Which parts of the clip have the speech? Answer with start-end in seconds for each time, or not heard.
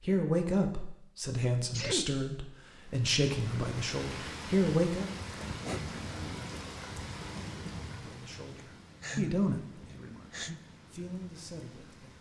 0.0-5.1, 7.9-12.1.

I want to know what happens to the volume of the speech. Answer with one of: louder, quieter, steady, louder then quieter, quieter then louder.
quieter.